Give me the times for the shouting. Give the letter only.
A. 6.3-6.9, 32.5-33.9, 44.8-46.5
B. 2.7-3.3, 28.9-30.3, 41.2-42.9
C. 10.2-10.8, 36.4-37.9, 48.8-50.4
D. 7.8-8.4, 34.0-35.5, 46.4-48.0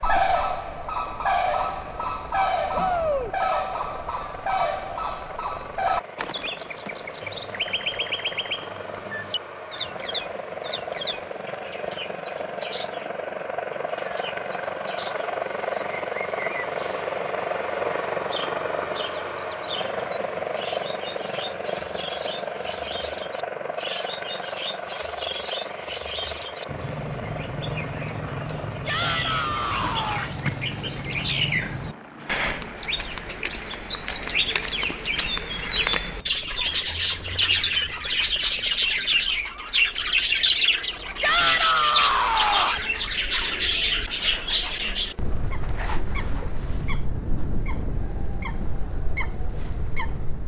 B.